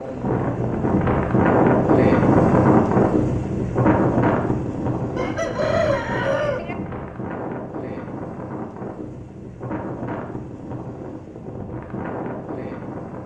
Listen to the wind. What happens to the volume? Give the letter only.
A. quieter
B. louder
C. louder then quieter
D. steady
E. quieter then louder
A.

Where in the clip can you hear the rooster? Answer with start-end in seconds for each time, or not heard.
5.2-6.8.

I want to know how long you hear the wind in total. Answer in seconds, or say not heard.
13 s.